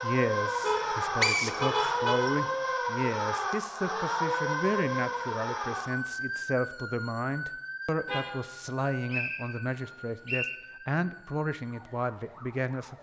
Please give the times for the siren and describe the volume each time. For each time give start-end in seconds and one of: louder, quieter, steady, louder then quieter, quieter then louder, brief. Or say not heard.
0.0-12.9 quieter.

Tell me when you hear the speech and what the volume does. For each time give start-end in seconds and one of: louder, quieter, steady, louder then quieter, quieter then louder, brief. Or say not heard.
0.0-12.9 steady.